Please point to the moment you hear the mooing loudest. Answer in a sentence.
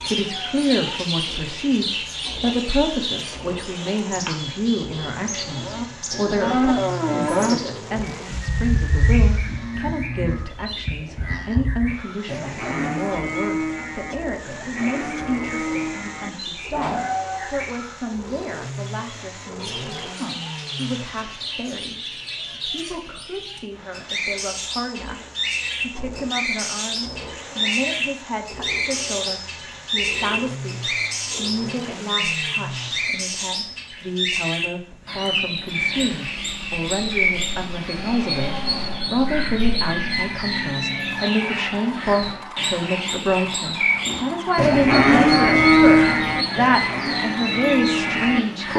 The loudest moment of the mooing is at 46 seconds.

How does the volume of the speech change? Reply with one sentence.
The loudness of the speech goes down, then up.